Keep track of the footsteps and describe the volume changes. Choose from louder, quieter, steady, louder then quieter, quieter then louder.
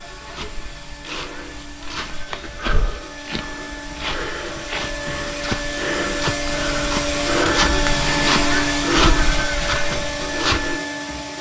louder.